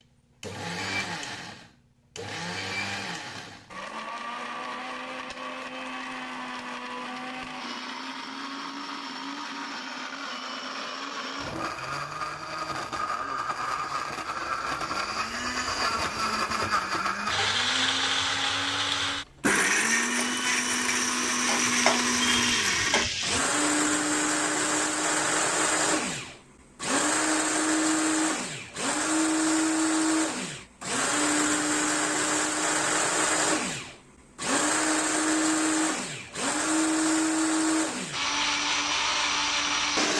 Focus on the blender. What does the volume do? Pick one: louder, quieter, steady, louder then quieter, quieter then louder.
louder.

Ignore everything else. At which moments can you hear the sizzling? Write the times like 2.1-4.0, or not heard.
20.1-23.4.